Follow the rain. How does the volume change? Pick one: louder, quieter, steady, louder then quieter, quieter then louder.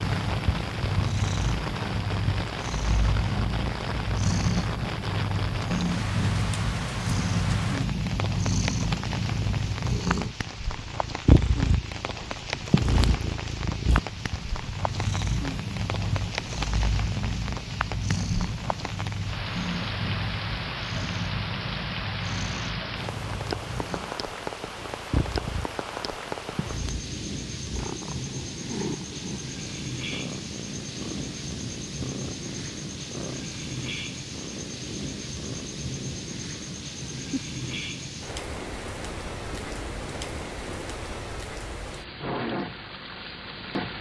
steady.